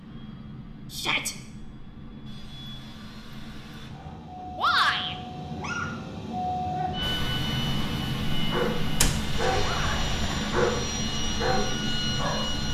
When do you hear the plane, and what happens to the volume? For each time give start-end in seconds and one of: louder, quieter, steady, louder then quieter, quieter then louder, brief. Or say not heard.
0.0-12.6 louder.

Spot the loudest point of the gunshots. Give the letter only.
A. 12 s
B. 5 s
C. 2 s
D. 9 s
D.